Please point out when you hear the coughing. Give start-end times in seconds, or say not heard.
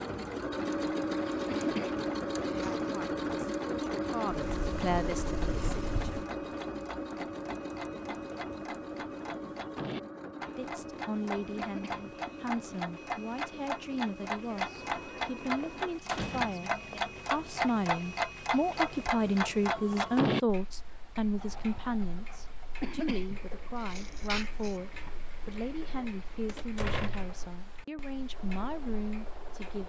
1.4-2.8, 11.6-12.0, 22.8-24.8.